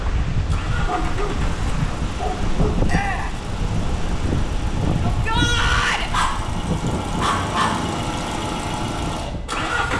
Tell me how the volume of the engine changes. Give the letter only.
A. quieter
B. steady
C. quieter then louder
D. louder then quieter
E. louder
E.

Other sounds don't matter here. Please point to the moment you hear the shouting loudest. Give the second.
6 s.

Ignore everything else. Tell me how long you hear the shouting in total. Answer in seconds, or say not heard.
2 s.